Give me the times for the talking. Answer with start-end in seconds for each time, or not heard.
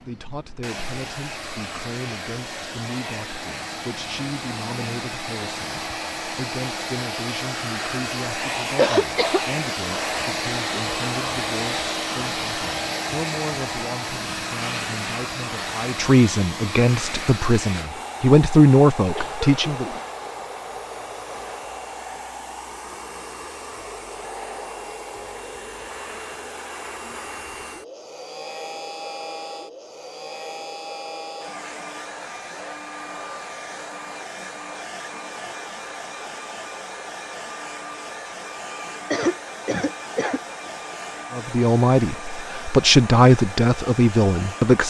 0.0-19.9, 41.3-44.8.